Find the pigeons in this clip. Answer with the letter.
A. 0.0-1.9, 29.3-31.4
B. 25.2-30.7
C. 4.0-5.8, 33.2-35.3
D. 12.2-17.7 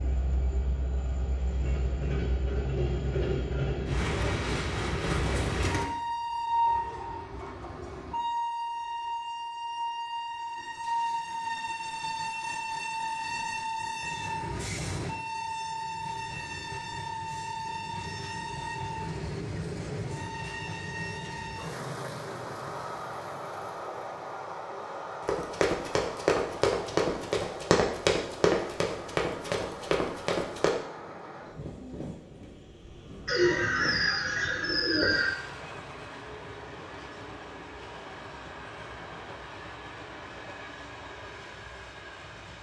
C.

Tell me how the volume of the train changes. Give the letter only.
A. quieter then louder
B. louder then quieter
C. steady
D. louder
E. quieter
E.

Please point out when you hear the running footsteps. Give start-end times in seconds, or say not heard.
25.2-30.7.